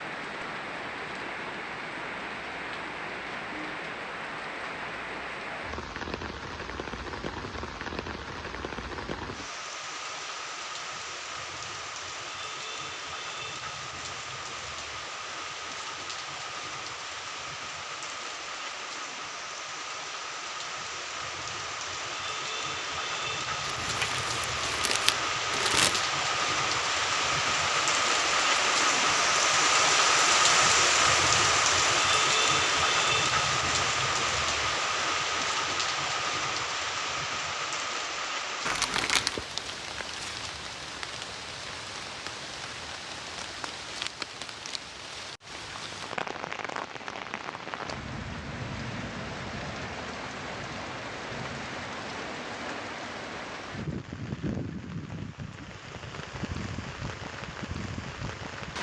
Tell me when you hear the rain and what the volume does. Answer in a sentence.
You can hear the rain from 0.0 to 58.7 s, getting louder then quieter.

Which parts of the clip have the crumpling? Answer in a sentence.
The crumpling can be heard from 23.6 to 26.1 s and from 38.6 to 39.4 s.